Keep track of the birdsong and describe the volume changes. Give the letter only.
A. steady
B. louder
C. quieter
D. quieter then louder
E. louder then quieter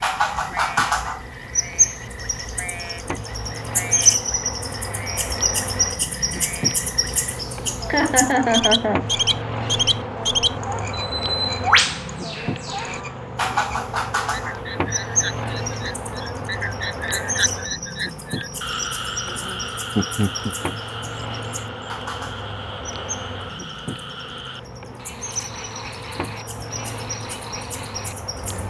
C.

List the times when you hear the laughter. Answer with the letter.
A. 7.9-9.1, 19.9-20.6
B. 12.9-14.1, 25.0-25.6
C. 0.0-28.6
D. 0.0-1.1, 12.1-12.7
A.